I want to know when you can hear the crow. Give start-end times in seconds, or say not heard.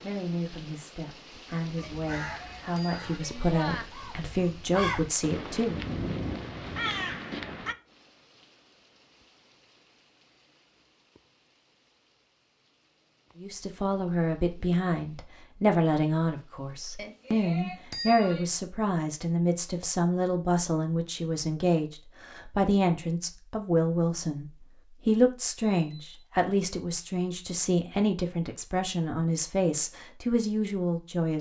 1.8-7.8.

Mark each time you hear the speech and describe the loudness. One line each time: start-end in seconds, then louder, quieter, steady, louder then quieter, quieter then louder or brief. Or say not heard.
0.0-5.8 louder
13.3-31.3 steady.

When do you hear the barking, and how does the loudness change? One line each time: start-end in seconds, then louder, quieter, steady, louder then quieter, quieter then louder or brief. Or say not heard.
not heard.